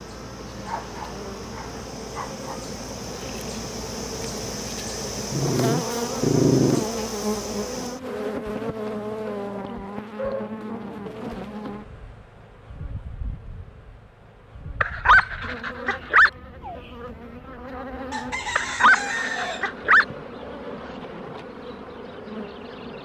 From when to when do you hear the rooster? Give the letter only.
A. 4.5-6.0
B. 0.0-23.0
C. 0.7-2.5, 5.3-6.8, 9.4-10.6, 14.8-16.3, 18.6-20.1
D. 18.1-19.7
D.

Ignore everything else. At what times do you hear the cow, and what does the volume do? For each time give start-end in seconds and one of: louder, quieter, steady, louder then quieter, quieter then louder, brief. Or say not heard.
not heard.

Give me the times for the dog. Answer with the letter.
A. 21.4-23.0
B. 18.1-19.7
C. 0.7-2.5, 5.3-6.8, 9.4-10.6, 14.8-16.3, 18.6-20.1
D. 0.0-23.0
C.